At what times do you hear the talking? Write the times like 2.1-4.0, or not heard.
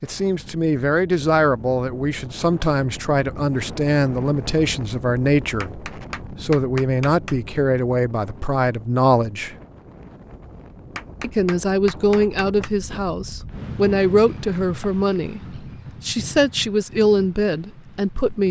0.0-9.6, 11.2-18.4.